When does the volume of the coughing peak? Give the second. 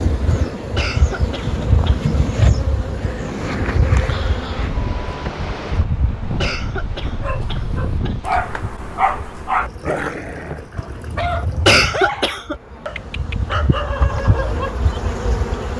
12 s.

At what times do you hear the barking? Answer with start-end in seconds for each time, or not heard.
7.2-14.8.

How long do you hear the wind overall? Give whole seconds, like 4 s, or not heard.
8 s.